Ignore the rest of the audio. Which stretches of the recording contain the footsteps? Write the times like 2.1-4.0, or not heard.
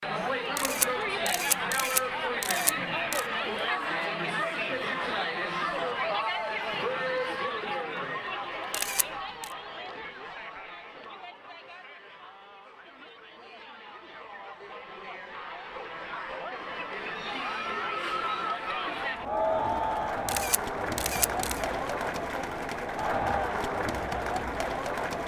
not heard.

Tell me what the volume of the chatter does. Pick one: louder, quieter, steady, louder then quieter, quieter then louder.
quieter then louder.